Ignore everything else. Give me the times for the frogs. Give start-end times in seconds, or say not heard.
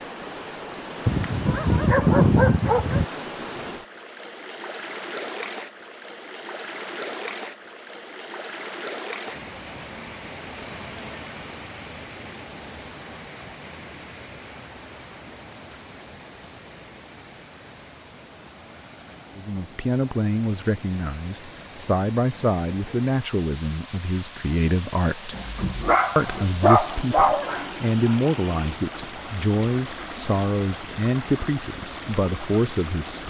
not heard.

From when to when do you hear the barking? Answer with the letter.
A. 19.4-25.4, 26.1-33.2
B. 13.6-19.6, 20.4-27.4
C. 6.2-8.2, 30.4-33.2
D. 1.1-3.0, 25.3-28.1
D.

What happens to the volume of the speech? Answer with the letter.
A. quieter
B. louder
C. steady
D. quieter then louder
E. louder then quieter
C.